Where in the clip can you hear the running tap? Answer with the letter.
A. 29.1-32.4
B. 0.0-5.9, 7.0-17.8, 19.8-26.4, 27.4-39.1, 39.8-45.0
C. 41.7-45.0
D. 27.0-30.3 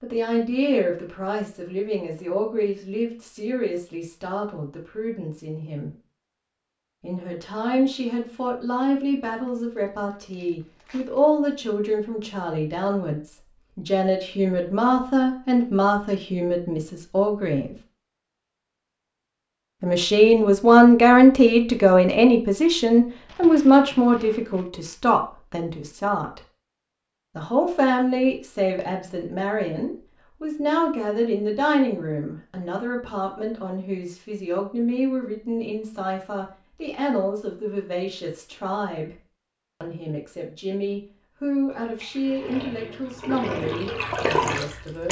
C.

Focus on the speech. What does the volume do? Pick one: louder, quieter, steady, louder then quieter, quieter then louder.
louder then quieter.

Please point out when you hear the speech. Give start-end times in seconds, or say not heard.
0.0-5.9, 7.0-17.8, 19.8-26.4, 27.4-39.1, 39.8-45.0.